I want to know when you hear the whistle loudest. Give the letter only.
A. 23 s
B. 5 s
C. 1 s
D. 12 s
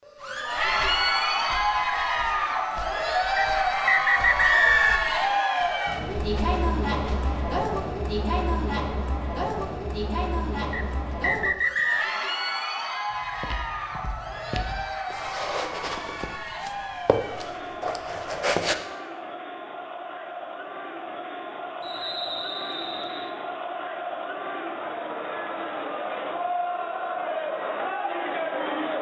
B.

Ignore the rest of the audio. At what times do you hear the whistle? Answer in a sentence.
You can hear the whistle from 3.4 to 5.1 s, from 10.7 to 12.1 s and from 21.8 to 23.3 s.